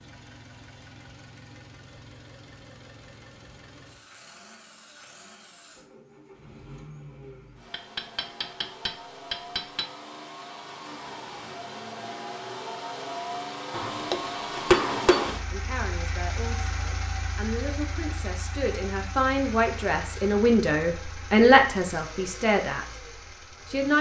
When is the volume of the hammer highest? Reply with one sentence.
The loudest moment of the hammer is at 15 seconds.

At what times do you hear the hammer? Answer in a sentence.
You can hear the hammer from 7.7 to 9.8 s and from 13.7 to 15.3 s.